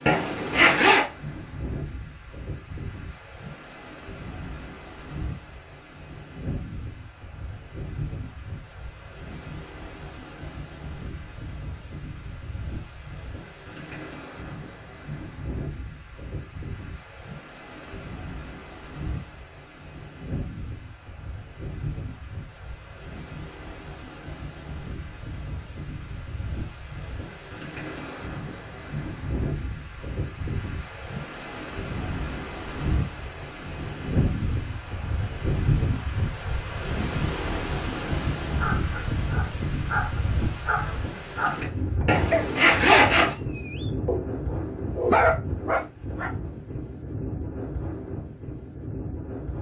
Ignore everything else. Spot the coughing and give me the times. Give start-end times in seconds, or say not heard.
not heard.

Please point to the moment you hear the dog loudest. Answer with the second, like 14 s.
45 s.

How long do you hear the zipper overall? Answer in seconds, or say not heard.
2 s.